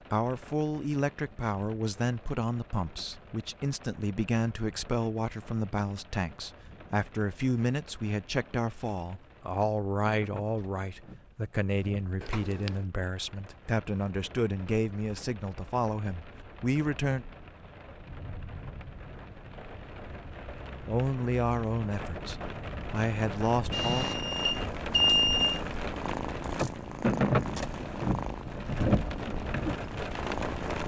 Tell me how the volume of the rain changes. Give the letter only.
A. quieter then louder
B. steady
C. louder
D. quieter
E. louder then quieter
C.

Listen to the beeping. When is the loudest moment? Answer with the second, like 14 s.
25 s.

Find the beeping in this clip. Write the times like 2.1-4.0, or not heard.
12.2-12.7, 23.7-25.6.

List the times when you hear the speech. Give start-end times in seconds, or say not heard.
0.1-17.2, 20.9-24.1.